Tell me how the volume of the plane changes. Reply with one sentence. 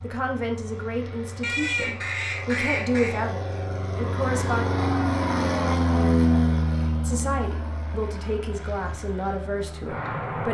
The volume of the plane goes up, then down.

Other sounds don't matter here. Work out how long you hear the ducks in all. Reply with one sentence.
You can hear the ducks for 2 seconds altogether.